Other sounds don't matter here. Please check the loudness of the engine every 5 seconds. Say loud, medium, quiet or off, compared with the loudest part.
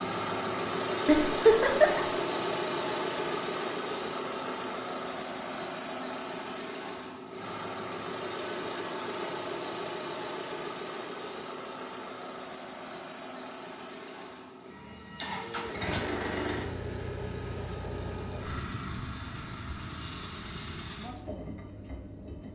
loud, medium, medium, medium, medium.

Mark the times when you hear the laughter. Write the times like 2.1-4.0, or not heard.
1.1-2.0.